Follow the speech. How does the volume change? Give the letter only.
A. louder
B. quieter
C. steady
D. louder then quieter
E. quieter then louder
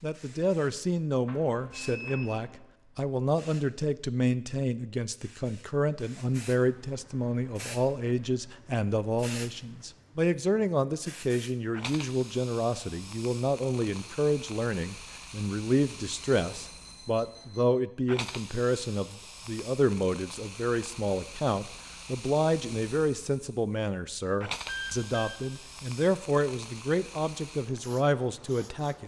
C.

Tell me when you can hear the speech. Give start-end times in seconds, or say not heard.
0.0-29.0.